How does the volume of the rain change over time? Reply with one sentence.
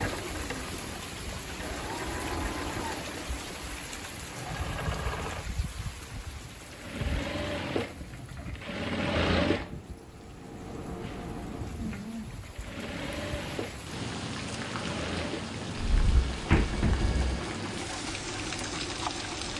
The volume of the rain goes down, then up.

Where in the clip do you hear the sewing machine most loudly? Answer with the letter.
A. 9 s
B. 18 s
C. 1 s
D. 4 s
A.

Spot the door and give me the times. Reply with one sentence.
You can hear the door from 15.8 to 17.3 s.